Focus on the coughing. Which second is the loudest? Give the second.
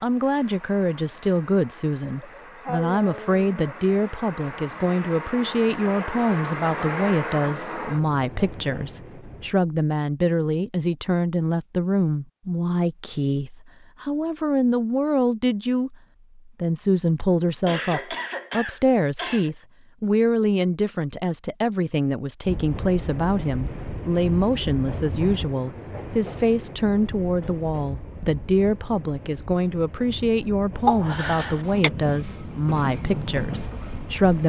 31 s.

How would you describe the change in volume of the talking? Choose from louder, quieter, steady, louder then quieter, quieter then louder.
steady.